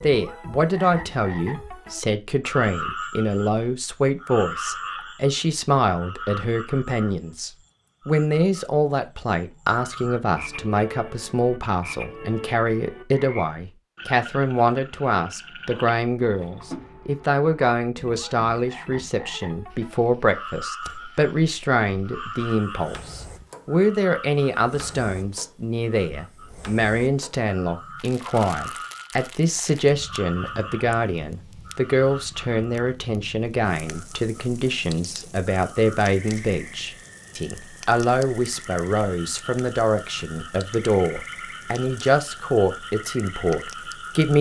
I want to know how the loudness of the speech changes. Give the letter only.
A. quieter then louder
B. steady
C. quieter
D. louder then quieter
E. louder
B.